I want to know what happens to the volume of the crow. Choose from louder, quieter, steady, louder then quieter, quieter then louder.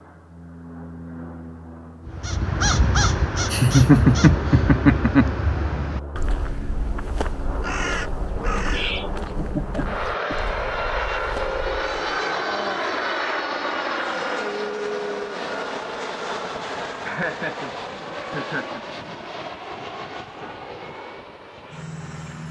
quieter.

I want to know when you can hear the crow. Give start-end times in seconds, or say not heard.
2.0-12.2.